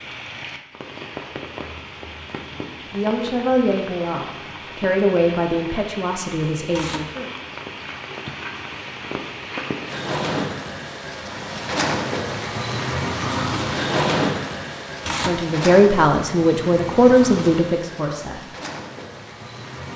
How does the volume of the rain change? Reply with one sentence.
The volume of the rain goes up, then down.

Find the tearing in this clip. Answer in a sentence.
You can hear the tearing from 6.7 to 7.2 s and from 15.0 to 15.4 s.